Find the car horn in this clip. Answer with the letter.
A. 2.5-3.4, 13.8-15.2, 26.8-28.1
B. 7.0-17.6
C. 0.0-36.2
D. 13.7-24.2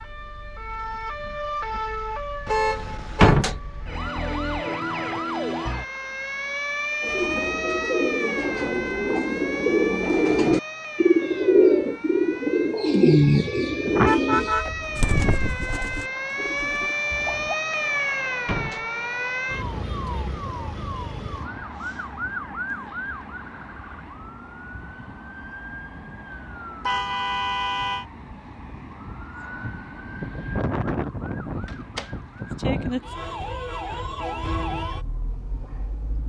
A.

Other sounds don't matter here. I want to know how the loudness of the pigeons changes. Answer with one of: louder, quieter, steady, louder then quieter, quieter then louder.
louder then quieter.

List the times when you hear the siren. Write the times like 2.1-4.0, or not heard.
0.0-36.2.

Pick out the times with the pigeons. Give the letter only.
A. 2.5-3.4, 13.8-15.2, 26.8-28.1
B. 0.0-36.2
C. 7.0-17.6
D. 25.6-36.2
C.